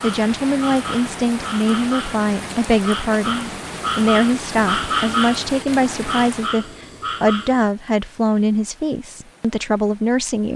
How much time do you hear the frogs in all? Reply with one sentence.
You can hear the frogs for 8 seconds altogether.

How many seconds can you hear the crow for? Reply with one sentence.
The crow can't be heard in this clip.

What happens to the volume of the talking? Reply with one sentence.
The volume of the talking stays about the same.